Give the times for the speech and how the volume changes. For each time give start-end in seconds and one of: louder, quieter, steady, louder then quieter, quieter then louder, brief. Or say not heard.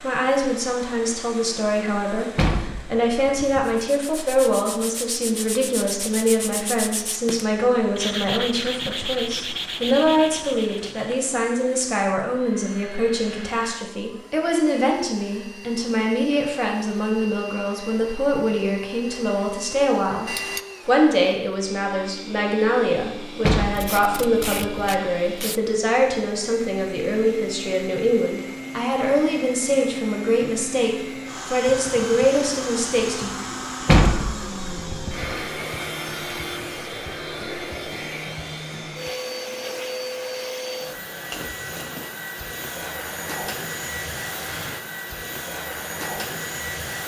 0.0-33.3 steady.